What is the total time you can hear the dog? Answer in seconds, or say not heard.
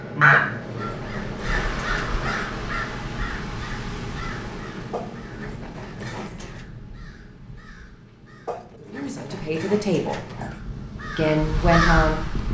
6 s.